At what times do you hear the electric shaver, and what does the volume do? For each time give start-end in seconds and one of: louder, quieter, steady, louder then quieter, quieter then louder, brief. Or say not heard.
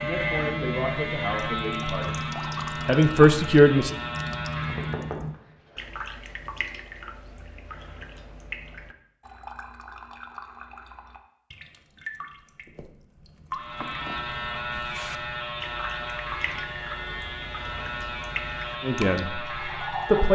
0.0-5.2 steady
13.6-20.3 steady.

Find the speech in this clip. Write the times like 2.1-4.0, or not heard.
0.0-2.2, 2.9-3.9, 18.9-20.3.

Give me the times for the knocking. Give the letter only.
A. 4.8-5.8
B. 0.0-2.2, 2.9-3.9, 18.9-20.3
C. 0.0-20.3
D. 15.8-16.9
A.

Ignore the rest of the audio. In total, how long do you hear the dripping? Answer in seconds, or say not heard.
20 s.